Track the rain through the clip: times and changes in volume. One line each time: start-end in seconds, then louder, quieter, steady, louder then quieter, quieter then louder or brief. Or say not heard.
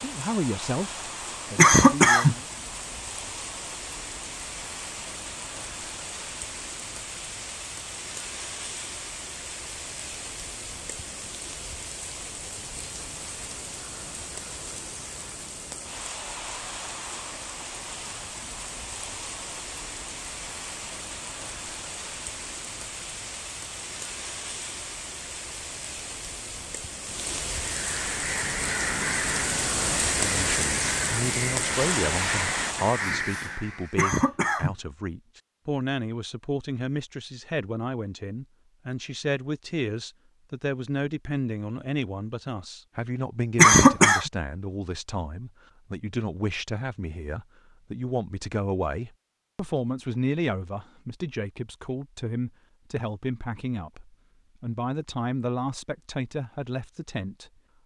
0.0-33.1 louder.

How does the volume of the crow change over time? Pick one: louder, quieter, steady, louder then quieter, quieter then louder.
steady.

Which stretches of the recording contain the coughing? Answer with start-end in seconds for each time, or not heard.
1.6-2.4, 34.0-34.8, 43.5-44.2.